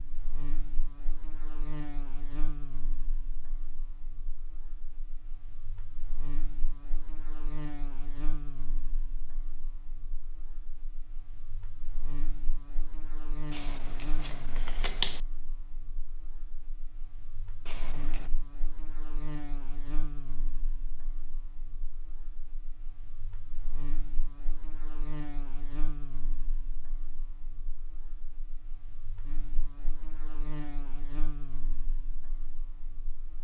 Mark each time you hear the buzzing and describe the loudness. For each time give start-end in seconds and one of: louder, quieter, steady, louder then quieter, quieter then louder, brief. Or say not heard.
0.0-33.4 steady.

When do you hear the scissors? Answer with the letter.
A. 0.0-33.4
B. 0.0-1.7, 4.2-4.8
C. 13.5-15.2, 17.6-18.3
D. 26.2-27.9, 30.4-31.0
C.